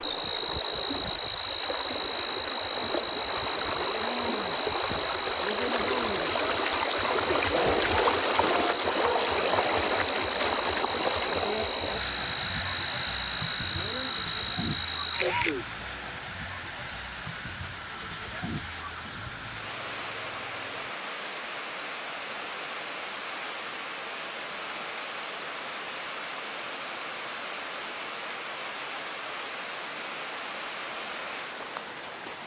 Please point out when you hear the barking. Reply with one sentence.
You can hear the barking from 7.3 to 9.8 s.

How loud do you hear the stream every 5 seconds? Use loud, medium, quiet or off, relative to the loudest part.
medium, loud, loud, medium, medium, medium, medium.